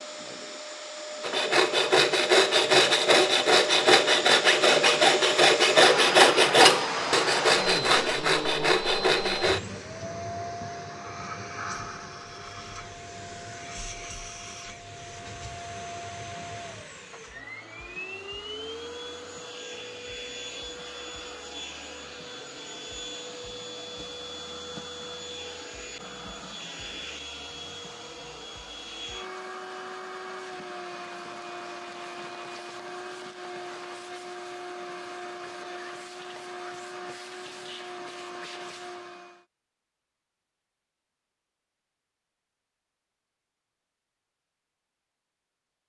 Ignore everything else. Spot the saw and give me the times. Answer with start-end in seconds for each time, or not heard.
1.2-9.6.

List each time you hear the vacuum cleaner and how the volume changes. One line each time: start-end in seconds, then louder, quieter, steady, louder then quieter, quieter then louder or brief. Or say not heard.
0.0-39.5 quieter.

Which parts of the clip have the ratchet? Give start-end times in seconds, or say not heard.
not heard.